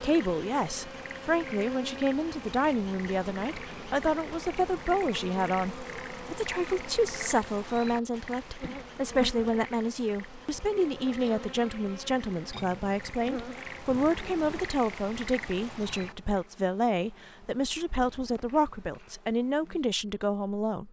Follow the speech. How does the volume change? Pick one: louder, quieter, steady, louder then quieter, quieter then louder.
steady.